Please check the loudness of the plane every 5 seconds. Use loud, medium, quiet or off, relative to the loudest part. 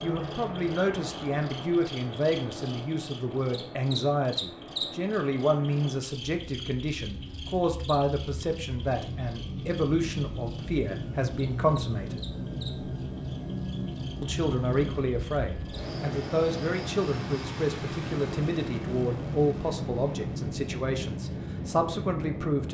medium, medium, loud, loud, loud.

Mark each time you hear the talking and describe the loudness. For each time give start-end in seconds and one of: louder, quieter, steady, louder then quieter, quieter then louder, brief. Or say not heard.
0.0-12.2 steady
14.2-22.7 steady.